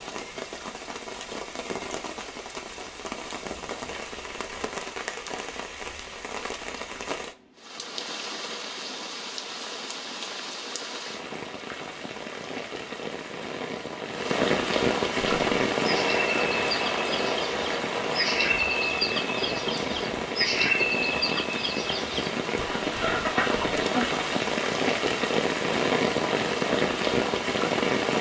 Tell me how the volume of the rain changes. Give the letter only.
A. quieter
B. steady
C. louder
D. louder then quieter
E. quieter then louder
C.